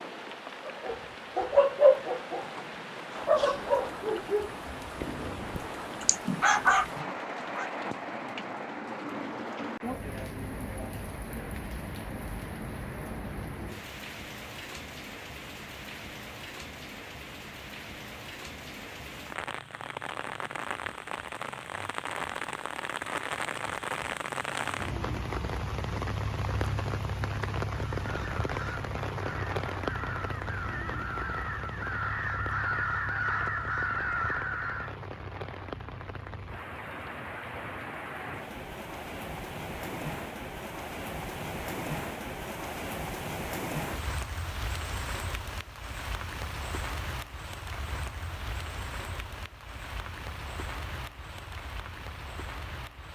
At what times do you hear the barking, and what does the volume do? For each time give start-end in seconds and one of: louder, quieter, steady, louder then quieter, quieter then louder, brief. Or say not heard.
0.7-7.7 quieter then louder.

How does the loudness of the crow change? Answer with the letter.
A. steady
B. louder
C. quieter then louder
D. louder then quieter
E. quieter
B.